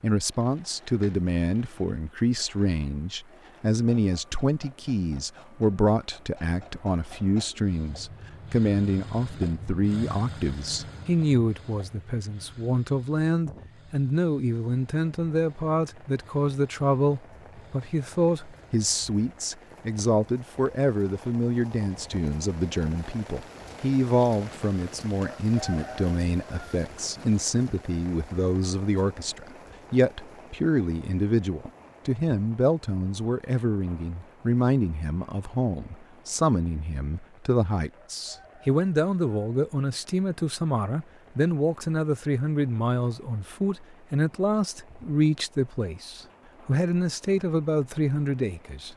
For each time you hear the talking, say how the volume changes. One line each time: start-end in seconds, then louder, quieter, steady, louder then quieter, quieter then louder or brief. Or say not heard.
0.0-48.9 steady.